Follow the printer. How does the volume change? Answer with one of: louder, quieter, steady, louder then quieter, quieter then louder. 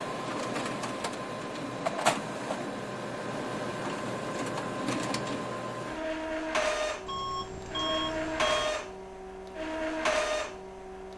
steady.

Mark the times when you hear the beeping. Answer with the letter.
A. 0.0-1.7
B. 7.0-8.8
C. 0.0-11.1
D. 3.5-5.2
B.